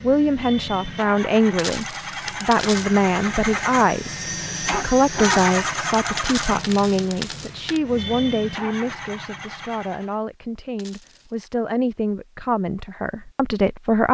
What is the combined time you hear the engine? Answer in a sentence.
The engine can be heard for 10 seconds in total.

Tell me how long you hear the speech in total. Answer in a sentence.
You can hear the speech for 14 seconds altogether.